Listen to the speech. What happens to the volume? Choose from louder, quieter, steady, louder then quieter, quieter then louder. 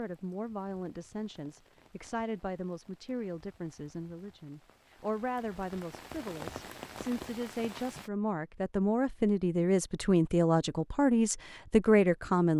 louder.